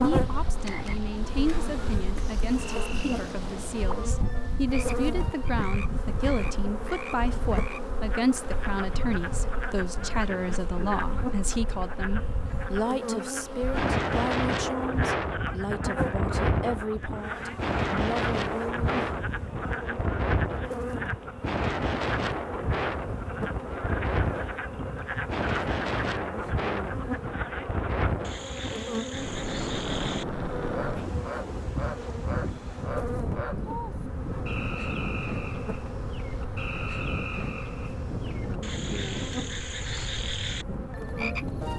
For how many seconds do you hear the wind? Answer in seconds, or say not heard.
42 s.